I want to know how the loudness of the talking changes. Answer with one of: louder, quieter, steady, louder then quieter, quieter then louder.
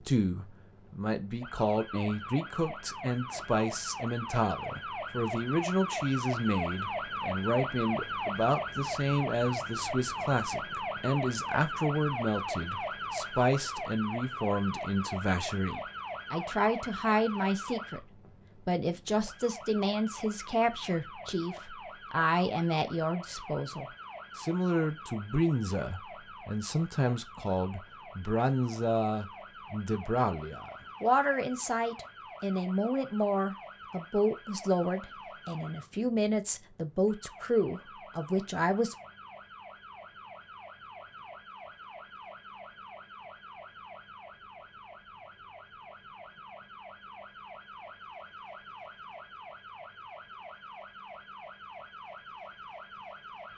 steady.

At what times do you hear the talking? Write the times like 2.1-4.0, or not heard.
0.0-18.1, 18.6-39.0.